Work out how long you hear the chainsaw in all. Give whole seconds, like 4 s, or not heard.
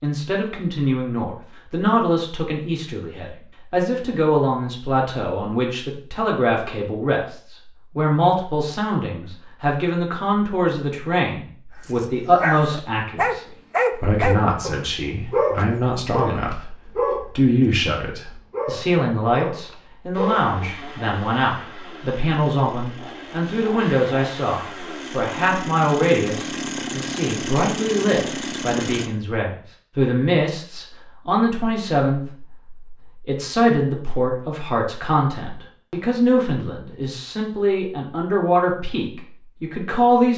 9 s.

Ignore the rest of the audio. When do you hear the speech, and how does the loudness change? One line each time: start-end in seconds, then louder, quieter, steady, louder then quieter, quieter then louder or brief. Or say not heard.
0.0-13.4 steady
14.0-16.8 brief
17.4-40.3 steady.